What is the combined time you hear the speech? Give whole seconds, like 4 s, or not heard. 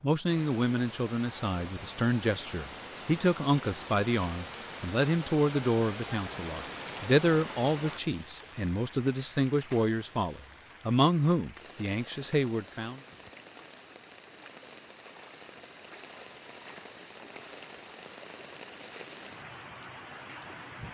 13 s.